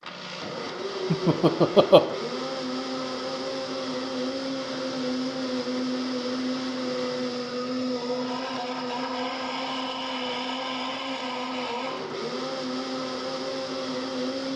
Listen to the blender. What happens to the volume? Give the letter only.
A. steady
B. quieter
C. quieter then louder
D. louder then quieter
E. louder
A.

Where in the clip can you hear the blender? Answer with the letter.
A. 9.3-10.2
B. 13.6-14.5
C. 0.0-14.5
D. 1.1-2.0
C.